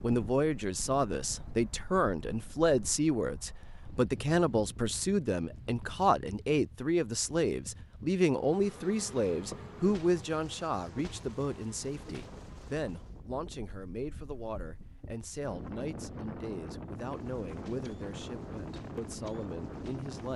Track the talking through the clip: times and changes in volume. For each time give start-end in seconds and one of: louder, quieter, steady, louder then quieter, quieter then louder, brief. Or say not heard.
0.0-20.3 quieter.